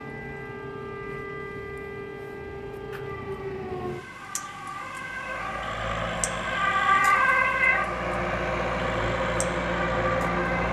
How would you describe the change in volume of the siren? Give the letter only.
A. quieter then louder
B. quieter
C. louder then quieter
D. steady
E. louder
C.